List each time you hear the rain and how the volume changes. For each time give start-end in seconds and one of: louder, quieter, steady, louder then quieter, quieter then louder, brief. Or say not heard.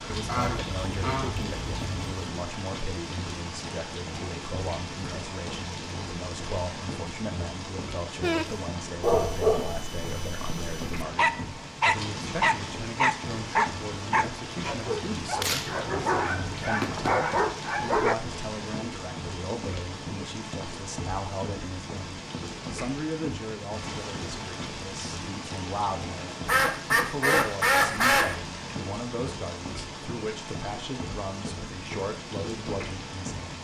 0.0-33.5 steady.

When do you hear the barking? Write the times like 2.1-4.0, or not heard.
8.2-18.1.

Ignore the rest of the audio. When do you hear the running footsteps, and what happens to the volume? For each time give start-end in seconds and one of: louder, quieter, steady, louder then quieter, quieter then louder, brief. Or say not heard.
not heard.